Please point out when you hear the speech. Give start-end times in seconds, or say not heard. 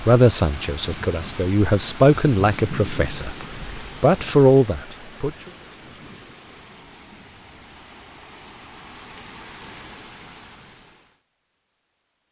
0.0-5.3.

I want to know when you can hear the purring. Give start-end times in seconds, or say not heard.
not heard.